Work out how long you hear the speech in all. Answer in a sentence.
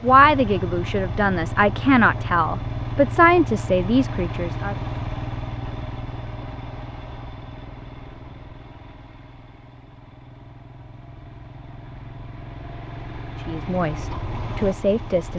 The speech can be heard for 7 seconds in total.